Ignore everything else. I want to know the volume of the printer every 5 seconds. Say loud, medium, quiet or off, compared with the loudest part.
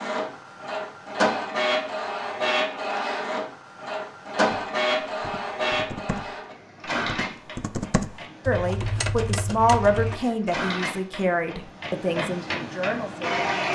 loud, medium, loud.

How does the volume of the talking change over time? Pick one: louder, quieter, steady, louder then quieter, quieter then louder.
quieter.